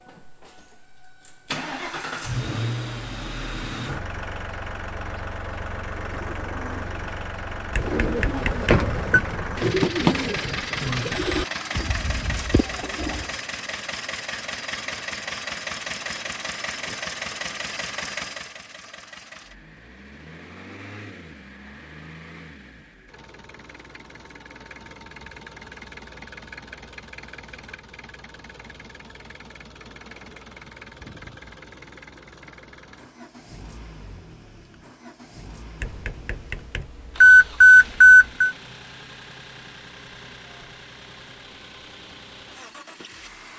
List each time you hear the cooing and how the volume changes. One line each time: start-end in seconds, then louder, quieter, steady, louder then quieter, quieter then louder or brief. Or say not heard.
6.0-13.3 louder then quieter.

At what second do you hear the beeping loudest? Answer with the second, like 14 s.
38 s.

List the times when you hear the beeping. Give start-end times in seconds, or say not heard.
7.8-9.2, 35.8-38.5.